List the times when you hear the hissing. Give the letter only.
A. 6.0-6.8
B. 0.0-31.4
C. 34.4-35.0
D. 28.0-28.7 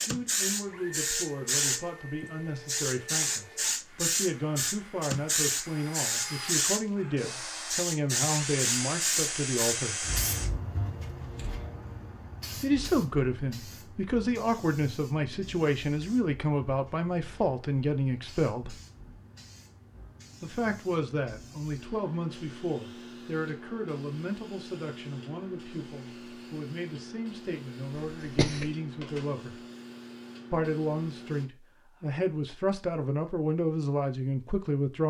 B.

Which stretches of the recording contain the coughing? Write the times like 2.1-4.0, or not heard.
28.0-28.7.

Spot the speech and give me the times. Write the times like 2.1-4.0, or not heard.
0.0-10.1, 12.6-18.8, 20.4-29.6, 30.5-35.0.